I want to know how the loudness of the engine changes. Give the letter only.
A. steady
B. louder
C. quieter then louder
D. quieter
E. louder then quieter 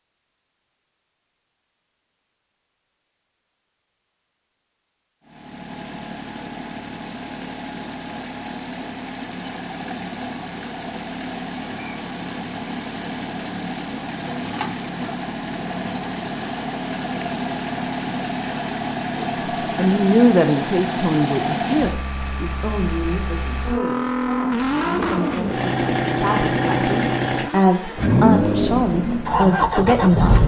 B.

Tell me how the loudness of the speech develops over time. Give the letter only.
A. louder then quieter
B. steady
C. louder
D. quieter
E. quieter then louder
E.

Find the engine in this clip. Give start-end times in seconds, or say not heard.
5.2-30.4.